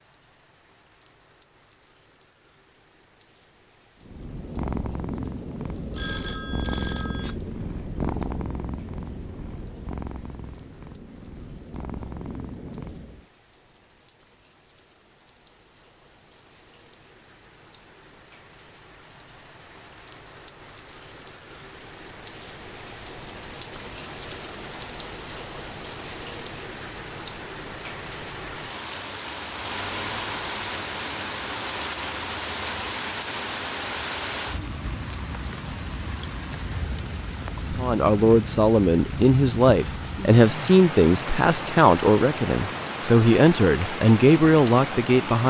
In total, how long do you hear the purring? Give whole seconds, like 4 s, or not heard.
9 s.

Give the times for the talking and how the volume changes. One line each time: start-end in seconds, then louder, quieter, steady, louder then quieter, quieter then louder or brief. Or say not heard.
37.7-45.4 steady.